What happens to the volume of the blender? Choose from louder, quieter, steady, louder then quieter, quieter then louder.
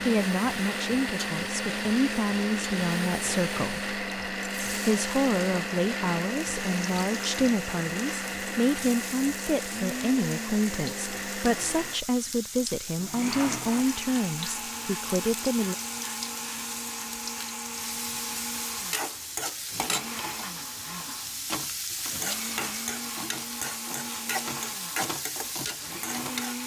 quieter.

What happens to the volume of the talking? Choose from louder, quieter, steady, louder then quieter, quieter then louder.
steady.